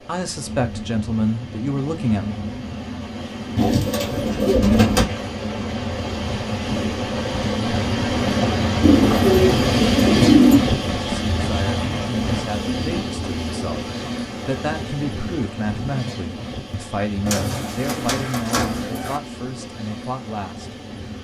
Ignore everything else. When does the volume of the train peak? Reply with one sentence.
The volume of the train peaks at 10 seconds.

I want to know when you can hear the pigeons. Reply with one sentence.
The pigeons can be heard from 3.5 to 5.1 s, from 8.8 to 10.6 s and from 17.2 to 19.2 s.